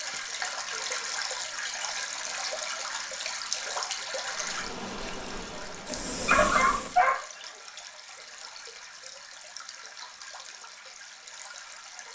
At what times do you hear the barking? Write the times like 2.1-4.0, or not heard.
5.8-7.2.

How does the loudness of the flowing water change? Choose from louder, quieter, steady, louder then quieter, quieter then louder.
quieter.